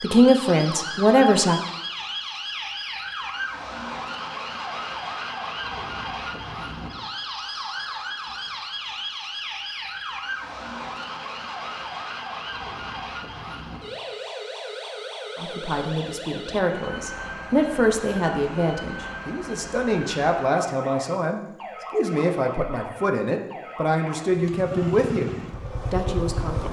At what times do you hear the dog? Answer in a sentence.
You can't hear the dog here.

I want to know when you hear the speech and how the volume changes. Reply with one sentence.
You can hear the speech briefly from 0.0 to 1.6 s; and from 15.3 to 26.6 s, at a steady volume.